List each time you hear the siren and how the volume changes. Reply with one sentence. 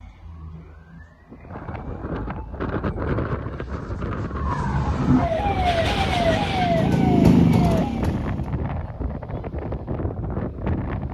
You can hear the siren from 0.0 to 8.1 s, getting louder.